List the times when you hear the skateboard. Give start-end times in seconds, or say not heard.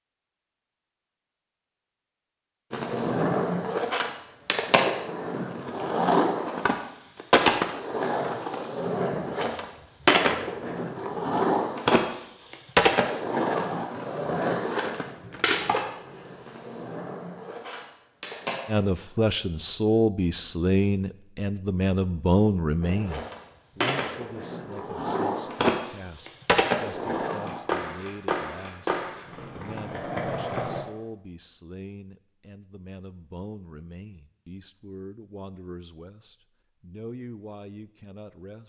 2.7-18.6, 22.8-30.9.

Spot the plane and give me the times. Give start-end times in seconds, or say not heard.
not heard.